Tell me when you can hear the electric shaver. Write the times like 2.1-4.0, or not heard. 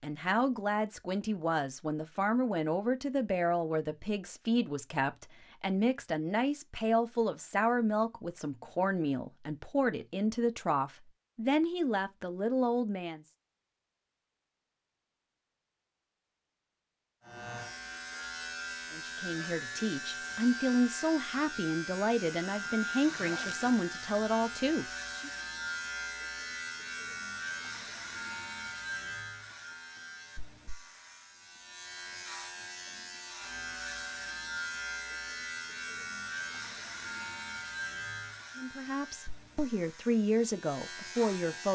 17.2-41.7.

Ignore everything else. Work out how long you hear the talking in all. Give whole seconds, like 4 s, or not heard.
23 s.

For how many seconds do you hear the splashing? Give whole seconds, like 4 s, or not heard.
not heard.